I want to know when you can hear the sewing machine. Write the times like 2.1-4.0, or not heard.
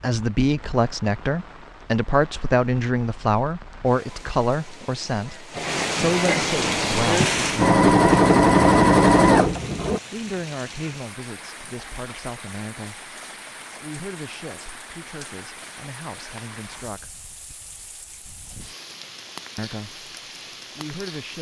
6.5-10.0.